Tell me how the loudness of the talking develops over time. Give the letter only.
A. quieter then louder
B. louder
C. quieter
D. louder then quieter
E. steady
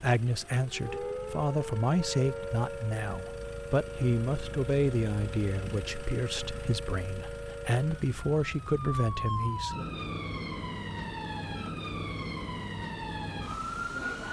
A.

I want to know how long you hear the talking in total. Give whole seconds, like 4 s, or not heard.
10 s.